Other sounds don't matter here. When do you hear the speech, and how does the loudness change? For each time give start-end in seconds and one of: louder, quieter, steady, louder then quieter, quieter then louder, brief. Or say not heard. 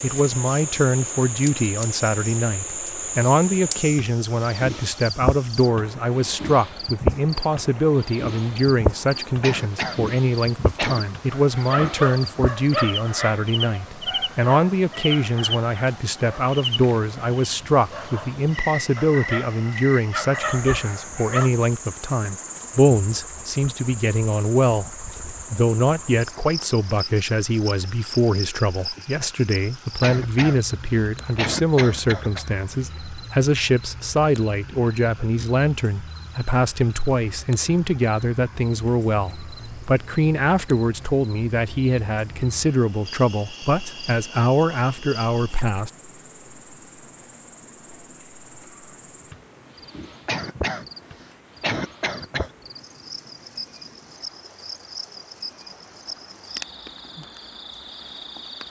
0.0-45.9 steady.